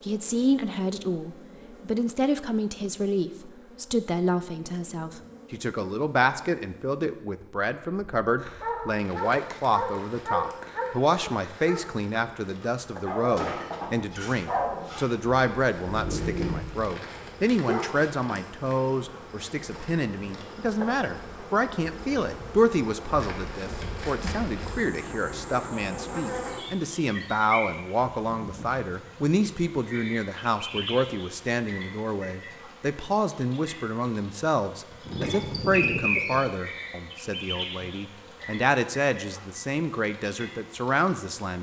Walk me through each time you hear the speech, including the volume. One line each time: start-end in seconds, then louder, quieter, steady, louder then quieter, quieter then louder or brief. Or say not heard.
0.0-41.5 steady.